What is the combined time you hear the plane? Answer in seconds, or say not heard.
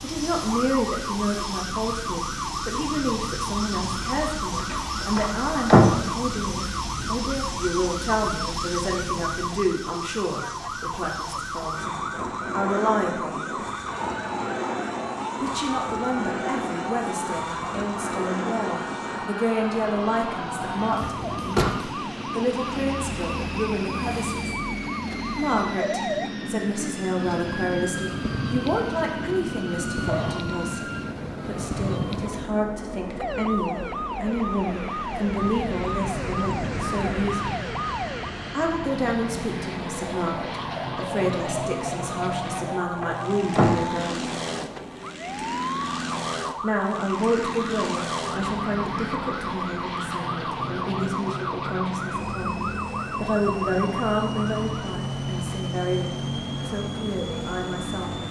58 s.